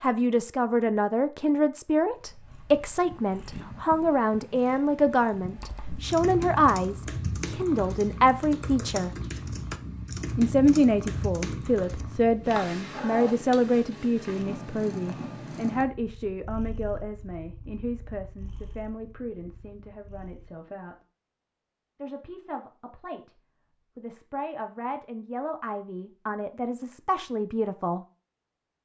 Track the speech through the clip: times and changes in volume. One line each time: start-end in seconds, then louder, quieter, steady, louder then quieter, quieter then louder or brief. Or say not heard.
0.0-9.1 steady
10.3-20.9 quieter
21.9-28.1 louder.